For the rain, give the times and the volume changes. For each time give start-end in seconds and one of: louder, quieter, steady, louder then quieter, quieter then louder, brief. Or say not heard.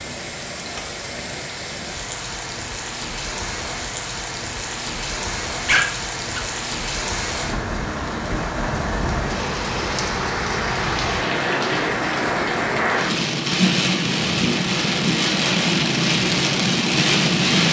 0.0-17.6 louder.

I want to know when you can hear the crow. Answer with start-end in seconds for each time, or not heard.
not heard.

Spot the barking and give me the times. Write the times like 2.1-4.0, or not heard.
5.7-6.5.